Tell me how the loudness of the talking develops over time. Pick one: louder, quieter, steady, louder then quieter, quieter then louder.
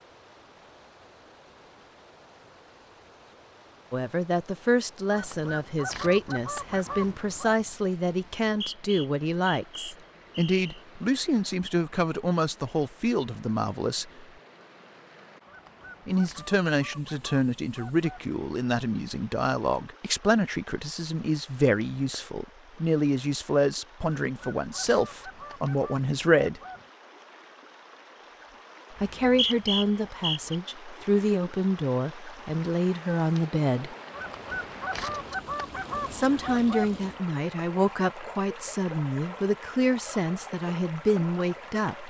steady.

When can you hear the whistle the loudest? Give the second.
30 s.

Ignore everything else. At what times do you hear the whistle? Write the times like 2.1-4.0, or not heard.
8.4-10.8, 28.9-30.6.